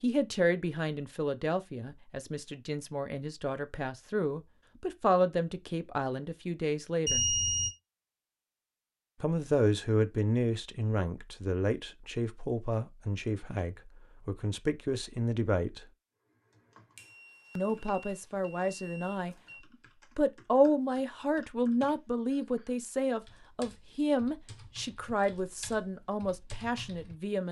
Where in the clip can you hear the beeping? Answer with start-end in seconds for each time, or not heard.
7.0-7.7, 16.9-19.6.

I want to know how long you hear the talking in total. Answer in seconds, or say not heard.
23 s.